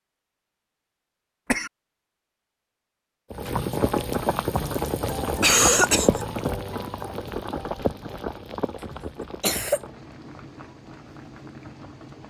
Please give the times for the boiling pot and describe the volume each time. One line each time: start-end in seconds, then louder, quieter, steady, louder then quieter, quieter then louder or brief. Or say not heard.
3.3-12.2 quieter.